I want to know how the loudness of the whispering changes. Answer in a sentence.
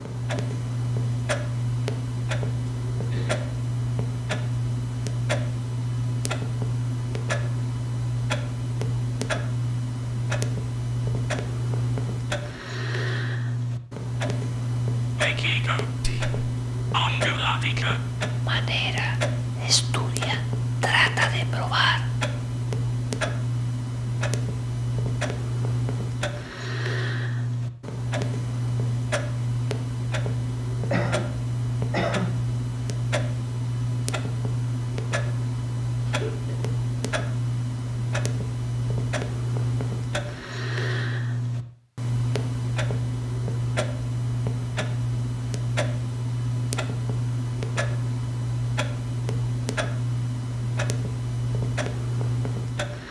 The loudness of the whispering goes up.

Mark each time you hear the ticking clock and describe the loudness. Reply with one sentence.
The ticking clock can be heard from 0.0 to 53.0 s, at a steady volume.